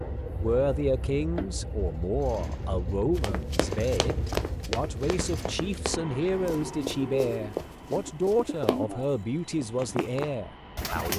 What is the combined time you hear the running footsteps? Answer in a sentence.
The running footsteps can be heard for 6 seconds in total.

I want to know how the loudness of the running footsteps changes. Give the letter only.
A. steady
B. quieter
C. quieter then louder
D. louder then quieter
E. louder
C.